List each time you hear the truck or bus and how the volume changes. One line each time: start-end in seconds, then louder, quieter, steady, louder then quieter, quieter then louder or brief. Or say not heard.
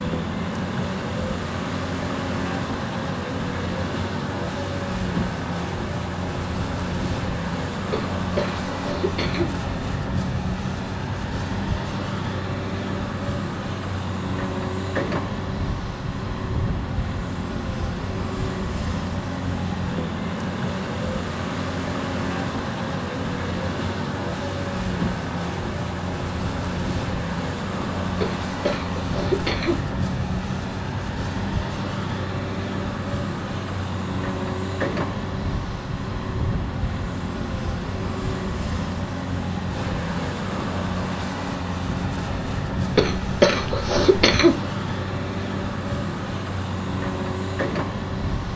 0.0-48.5 steady.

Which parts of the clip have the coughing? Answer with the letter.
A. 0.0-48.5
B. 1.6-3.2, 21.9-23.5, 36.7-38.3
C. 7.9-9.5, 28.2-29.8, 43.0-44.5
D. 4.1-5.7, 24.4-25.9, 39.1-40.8
C.